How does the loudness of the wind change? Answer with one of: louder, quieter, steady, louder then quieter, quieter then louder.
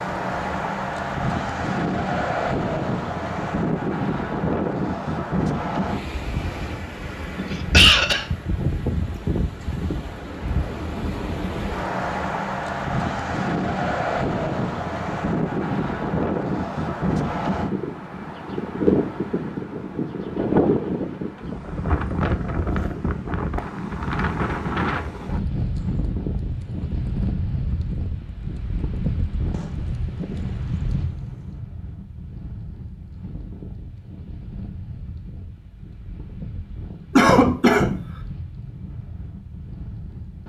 quieter.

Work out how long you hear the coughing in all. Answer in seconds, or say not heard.
2 s.